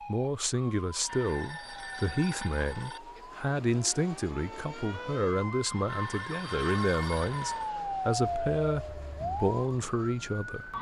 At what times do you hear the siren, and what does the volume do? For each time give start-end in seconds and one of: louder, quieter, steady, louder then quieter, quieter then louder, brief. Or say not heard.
0.0-10.7 louder.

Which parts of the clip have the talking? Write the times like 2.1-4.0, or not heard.
0.1-10.7.